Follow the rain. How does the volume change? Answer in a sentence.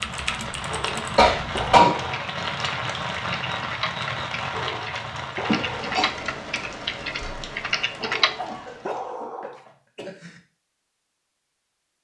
The loudness of the rain goes down.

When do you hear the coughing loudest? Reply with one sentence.
The volume of the coughing peaks at 2 seconds.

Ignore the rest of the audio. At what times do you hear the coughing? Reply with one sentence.
You can hear the coughing from 1.1 to 2.0 s, from 5.5 to 6.1 s and from 8.3 to 10.4 s.